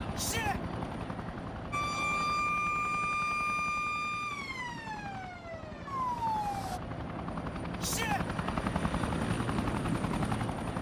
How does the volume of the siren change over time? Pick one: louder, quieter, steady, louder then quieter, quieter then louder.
quieter then louder.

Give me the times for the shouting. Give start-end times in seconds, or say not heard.
0.1-0.6, 7.8-8.2.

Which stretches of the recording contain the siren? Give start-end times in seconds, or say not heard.
1.7-6.8.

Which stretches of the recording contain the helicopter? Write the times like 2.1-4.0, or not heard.
0.0-10.7.